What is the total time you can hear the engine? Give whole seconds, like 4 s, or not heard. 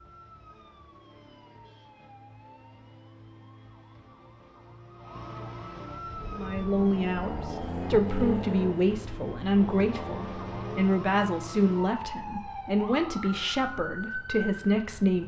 5 s.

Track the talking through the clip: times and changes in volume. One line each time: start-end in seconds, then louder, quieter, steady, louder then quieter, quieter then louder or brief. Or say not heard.
6.3-15.2 steady.